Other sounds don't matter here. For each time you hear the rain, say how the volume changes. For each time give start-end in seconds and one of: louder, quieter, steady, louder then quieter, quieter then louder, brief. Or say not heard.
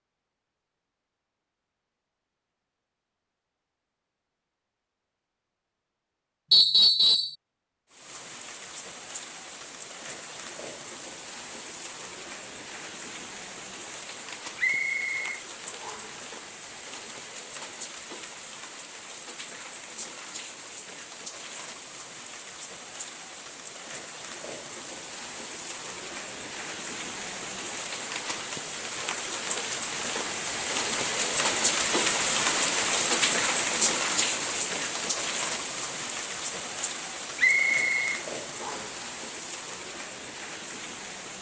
7.9-41.3 louder then quieter.